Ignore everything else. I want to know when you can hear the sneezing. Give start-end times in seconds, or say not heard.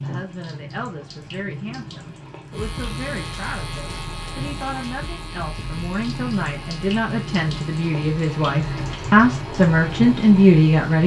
not heard.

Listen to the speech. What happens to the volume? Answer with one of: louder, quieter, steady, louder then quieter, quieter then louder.
louder.